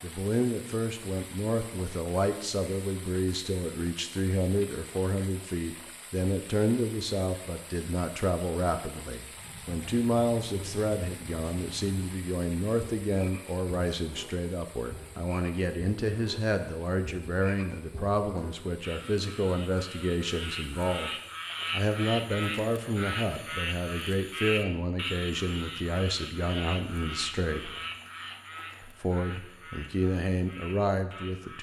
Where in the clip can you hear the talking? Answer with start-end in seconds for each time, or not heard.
0.0-21.1, 21.7-27.7, 28.8-31.5.